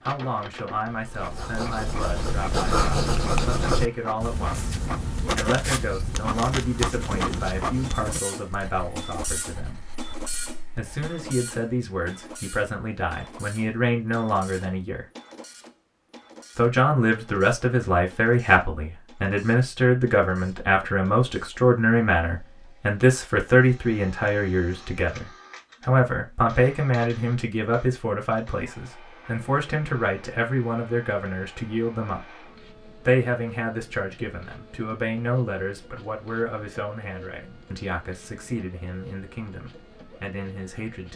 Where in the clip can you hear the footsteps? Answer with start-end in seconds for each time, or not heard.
not heard.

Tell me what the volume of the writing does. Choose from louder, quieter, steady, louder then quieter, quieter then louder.
quieter.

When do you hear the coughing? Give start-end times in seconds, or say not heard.
not heard.